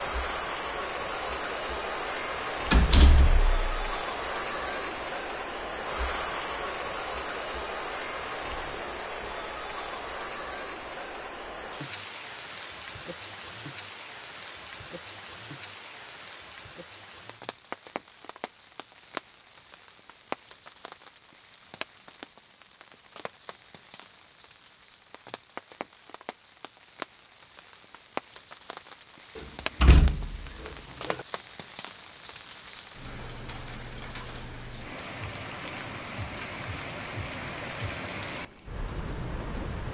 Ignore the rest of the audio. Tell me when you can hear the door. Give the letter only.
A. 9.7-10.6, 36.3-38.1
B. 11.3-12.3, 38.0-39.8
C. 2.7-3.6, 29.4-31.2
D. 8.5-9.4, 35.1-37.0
C.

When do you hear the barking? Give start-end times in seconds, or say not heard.
not heard.